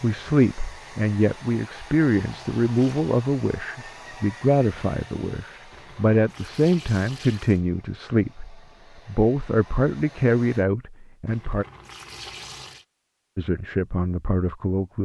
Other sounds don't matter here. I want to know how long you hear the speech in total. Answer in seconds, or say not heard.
13 s.